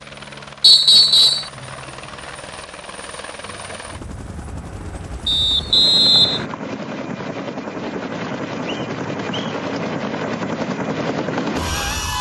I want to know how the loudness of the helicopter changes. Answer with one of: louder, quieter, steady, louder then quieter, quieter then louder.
louder.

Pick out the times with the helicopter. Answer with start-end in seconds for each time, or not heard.
0.0-12.1.